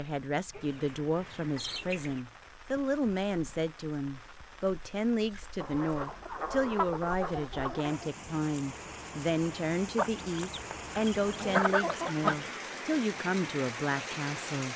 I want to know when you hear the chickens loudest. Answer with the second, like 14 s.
12 s.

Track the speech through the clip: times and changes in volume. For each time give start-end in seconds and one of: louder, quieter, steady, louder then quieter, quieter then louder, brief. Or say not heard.
0.0-14.7 steady.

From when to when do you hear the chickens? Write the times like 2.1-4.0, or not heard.
0.5-2.2, 5.6-8.1, 9.9-12.3.